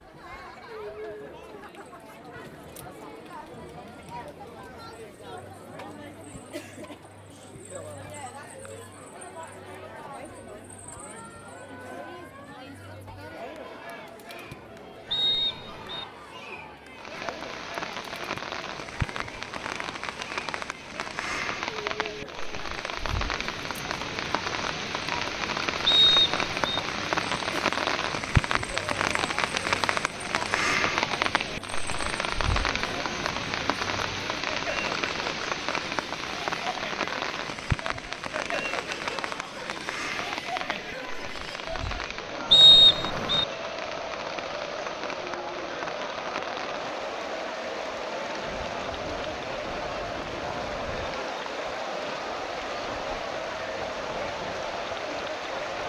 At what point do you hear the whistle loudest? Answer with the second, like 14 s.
43 s.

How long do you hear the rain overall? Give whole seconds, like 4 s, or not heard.
39 s.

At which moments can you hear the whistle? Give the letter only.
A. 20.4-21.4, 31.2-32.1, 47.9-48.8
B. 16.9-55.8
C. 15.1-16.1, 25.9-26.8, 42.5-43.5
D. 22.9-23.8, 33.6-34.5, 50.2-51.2
C.